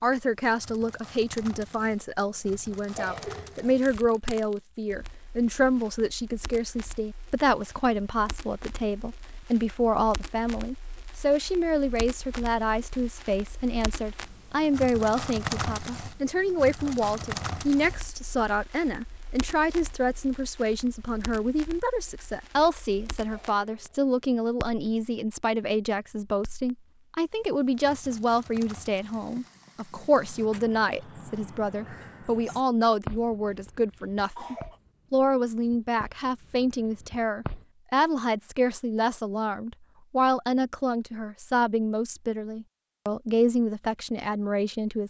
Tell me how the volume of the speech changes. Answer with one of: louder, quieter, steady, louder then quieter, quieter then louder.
steady.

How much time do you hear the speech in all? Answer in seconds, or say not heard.
45 s.